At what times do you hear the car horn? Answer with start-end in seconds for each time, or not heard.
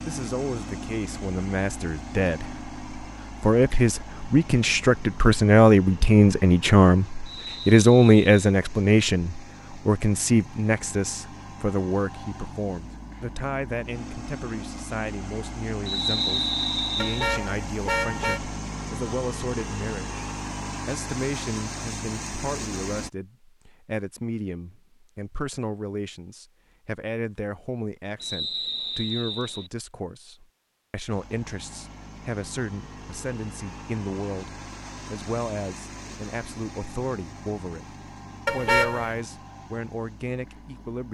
17.0-18.4, 38.5-39.1.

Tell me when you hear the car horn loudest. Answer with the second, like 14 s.
39 s.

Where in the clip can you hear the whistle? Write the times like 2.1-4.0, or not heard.
7.2-8.5, 15.8-17.4, 28.2-29.7.